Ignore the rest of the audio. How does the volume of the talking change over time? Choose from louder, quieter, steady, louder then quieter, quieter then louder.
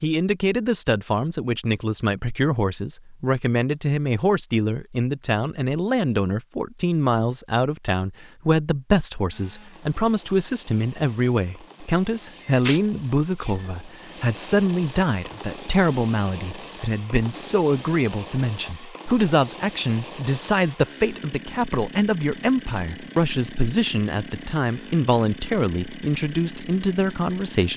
steady.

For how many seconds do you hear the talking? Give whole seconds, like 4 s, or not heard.
28 s.